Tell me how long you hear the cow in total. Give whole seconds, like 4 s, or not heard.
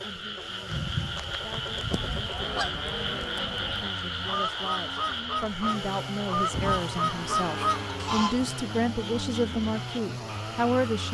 4 s.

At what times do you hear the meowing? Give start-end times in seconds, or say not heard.
not heard.